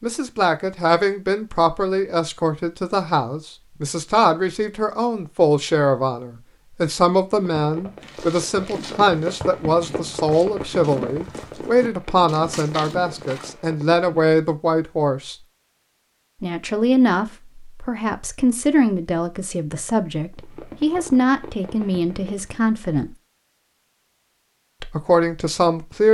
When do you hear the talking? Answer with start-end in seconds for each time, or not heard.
0.0-15.3, 16.4-23.1, 24.8-26.0.